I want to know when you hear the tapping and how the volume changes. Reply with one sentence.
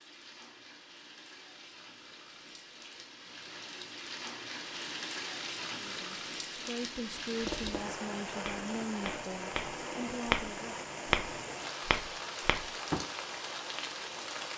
You can hear the tapping from 7.4 to 13.1 s, getting louder then quieter.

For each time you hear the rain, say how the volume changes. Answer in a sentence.
The rain can be heard from 0.0 to 14.5 s, getting louder.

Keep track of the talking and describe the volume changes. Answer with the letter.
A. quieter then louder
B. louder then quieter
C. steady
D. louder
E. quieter
C.